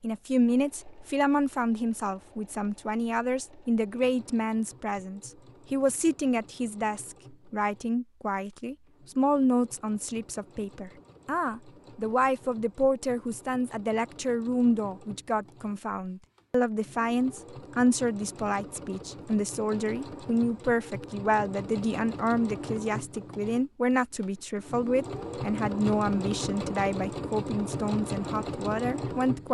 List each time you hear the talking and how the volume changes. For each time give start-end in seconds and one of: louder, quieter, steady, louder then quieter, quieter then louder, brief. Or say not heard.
0.0-29.5 steady.